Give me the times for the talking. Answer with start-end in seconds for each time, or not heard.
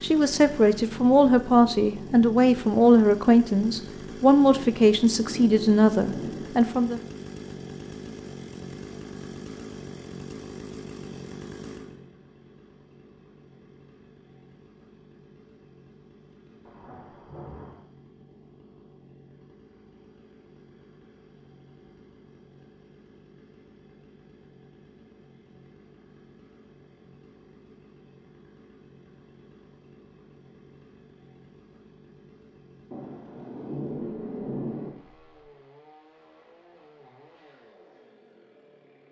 0.0-7.0.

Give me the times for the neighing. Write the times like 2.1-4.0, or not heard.
not heard.